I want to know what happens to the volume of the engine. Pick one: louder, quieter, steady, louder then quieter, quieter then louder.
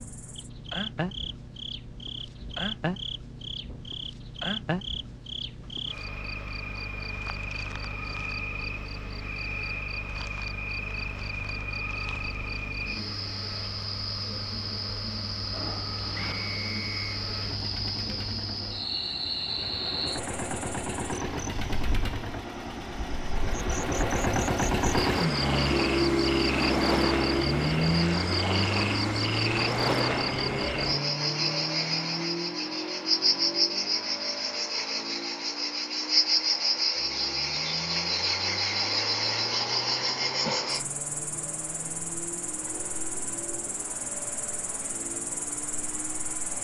louder then quieter.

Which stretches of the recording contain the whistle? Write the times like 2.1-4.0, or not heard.
16.1-17.2.